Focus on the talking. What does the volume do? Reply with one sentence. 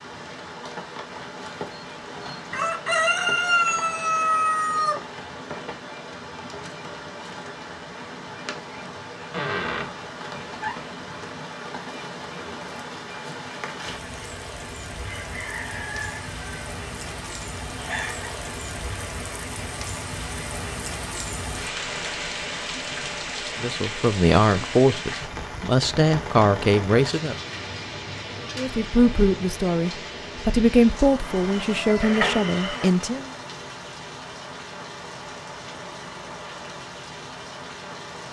The volume of the talking stays about the same.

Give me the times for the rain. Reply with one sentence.
You can hear the rain from 0.0 to 38.2 s.